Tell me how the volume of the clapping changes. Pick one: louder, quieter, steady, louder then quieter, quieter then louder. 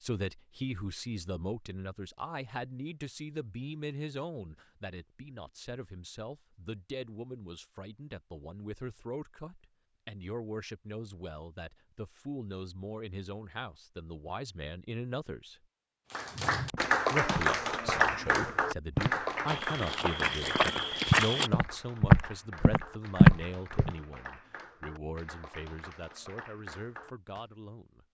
quieter.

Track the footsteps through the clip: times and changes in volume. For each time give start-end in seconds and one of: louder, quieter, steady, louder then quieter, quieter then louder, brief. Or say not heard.
16.7-23.9 louder.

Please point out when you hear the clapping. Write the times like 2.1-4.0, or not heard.
16.1-27.4.